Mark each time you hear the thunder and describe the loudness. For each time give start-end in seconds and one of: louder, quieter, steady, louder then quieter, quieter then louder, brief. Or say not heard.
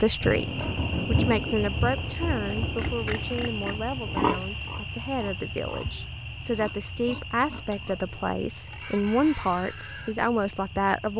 0.2-4.2 quieter.